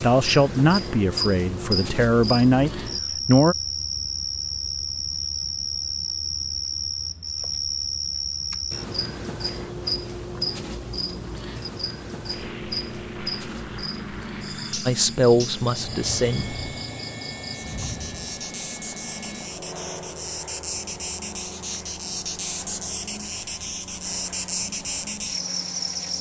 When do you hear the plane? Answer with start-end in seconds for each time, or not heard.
12.2-26.1.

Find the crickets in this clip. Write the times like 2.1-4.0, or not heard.
0.0-26.1.